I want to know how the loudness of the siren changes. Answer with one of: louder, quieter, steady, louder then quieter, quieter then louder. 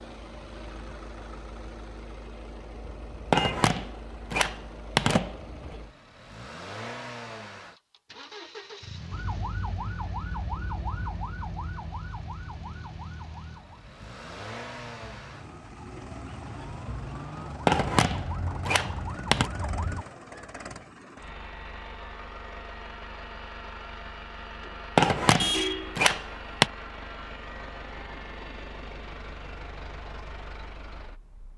quieter then louder.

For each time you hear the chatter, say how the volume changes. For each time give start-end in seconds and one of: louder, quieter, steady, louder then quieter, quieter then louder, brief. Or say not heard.
not heard.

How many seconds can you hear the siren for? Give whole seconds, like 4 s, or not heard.
11 s.